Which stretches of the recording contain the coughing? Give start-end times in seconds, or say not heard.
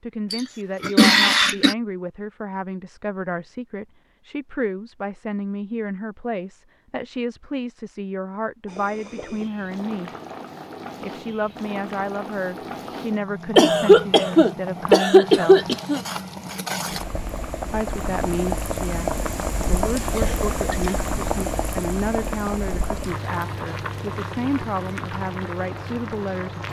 0.3-1.8, 13.6-16.0, 20.1-20.9.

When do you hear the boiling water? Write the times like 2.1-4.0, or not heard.
8.7-26.6.